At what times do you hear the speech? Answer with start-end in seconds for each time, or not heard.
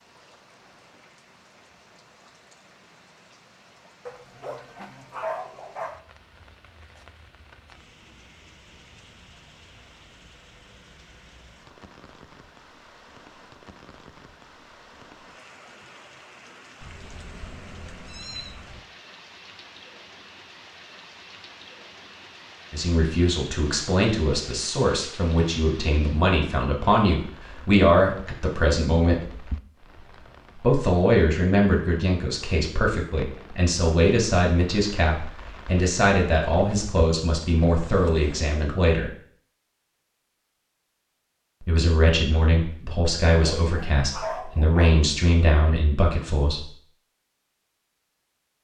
22.7-29.2, 30.6-39.1, 41.6-46.7.